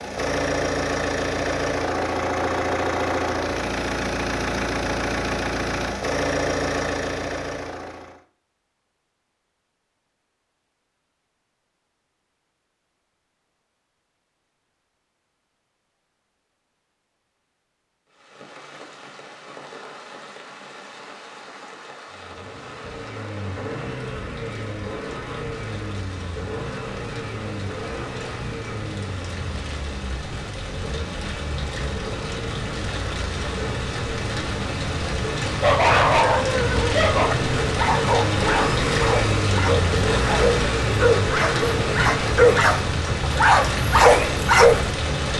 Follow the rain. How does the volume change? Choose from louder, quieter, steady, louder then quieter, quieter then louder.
louder.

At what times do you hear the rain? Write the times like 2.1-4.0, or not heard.
18.1-45.3.